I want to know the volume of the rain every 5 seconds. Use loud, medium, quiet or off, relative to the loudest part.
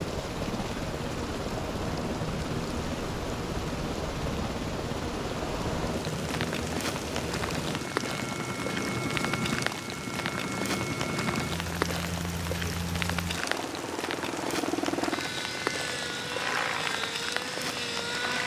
medium, loud, loud, loud.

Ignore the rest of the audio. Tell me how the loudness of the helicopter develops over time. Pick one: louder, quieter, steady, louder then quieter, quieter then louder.
steady.